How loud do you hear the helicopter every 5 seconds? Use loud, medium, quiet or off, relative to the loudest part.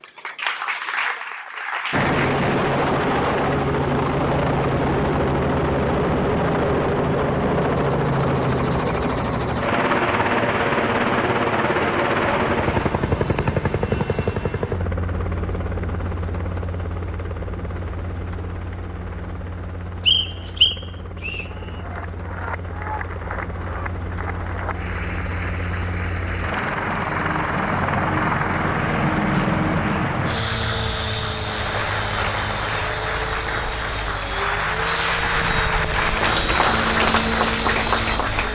loud, loud, loud, quiet, quiet, loud, medium, medium.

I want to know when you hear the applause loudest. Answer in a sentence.
The loudest moment of the applause is at 37 seconds.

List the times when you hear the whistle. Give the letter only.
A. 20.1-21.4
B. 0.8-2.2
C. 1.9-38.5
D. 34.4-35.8
A.